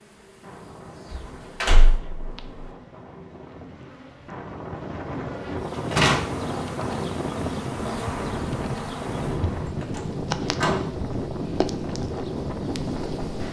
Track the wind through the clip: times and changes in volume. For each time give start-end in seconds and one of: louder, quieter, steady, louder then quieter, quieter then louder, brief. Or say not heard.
0.0-13.4 louder.